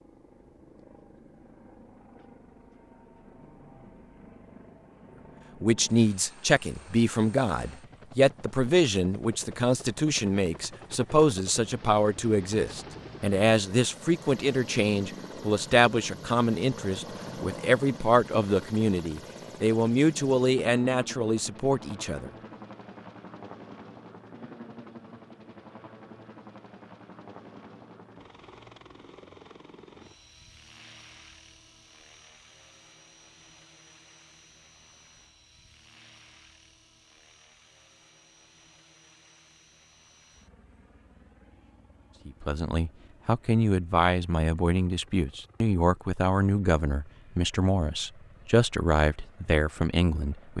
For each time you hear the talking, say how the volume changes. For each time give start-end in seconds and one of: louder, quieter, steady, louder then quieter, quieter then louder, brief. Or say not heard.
5.6-22.3 steady
42.2-50.5 steady.